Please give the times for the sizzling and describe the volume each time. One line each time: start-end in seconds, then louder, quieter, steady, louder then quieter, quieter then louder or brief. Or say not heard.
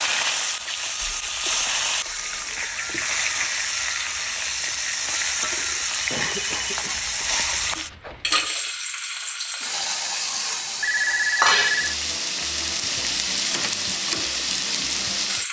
0.0-15.4 steady.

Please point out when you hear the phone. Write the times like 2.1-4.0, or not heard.
1.0-2.6, 6.0-8.5, 10.8-11.9.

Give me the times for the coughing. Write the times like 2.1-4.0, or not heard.
6.1-7.0.